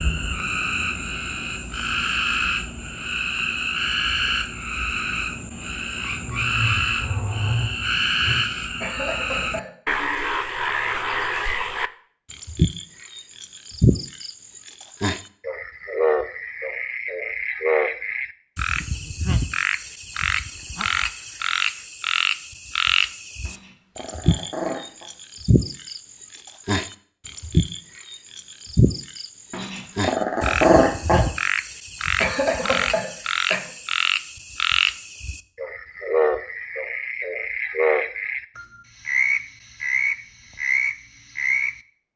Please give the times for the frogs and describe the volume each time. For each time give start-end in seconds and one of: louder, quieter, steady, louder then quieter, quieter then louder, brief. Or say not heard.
0.0-41.8 steady.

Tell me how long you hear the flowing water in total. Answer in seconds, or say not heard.
not heard.